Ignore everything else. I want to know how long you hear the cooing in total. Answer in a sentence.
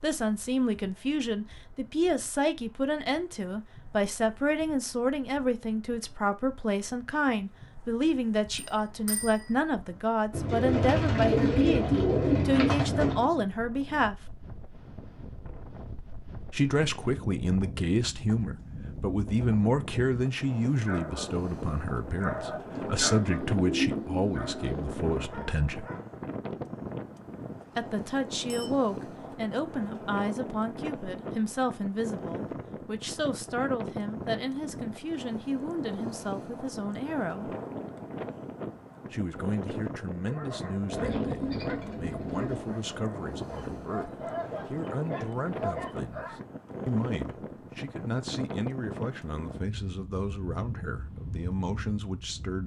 The cooing can be heard for 7 seconds in total.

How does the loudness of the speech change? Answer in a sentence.
The volume of the speech goes down.